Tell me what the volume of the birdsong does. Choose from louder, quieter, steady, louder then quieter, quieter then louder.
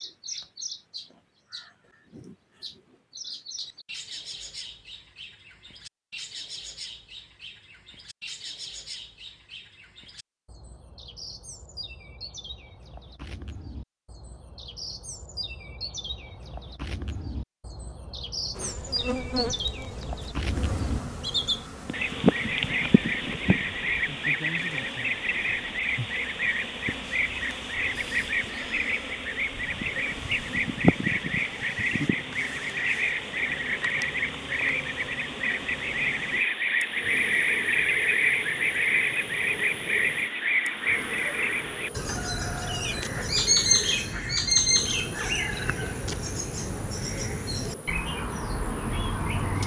louder.